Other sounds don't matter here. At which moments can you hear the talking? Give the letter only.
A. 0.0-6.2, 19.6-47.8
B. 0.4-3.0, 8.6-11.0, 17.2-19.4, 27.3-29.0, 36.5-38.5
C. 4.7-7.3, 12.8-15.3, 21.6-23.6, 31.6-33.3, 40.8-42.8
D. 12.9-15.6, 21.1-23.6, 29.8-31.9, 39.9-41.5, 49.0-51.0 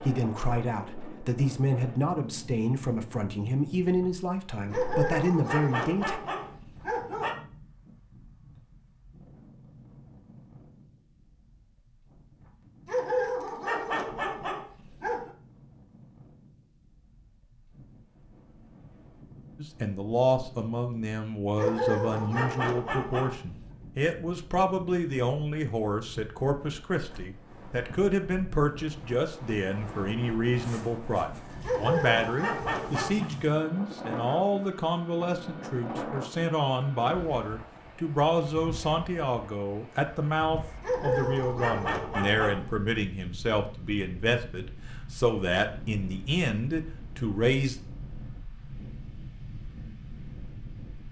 A.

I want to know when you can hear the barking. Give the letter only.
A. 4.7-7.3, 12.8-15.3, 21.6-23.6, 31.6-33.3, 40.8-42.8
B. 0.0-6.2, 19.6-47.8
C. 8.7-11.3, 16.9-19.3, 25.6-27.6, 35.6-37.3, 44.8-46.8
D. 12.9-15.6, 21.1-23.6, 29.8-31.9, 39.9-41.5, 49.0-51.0
A.